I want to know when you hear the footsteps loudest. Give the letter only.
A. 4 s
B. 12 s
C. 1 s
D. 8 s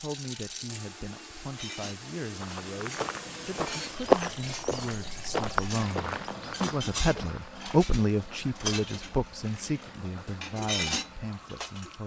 A.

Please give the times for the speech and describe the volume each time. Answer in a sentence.
The speech can be heard from 0.0 to 12.0 s, getting louder then quieter.